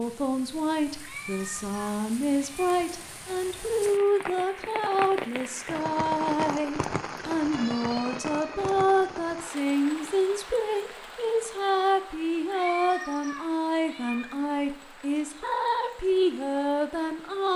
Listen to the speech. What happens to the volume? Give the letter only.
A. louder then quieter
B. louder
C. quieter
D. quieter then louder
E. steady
E.